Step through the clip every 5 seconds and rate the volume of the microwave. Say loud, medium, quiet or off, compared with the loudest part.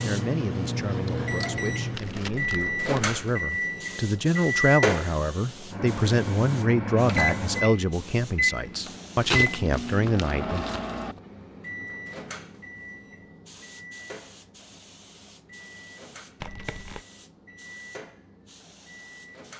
loud, loud, medium, quiet.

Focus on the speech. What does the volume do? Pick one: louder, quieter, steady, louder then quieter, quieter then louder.
louder.